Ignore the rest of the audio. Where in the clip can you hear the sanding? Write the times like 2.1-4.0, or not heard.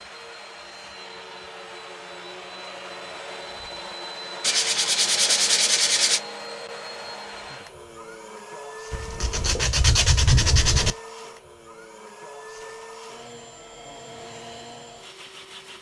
4.4-6.2, 8.9-10.9.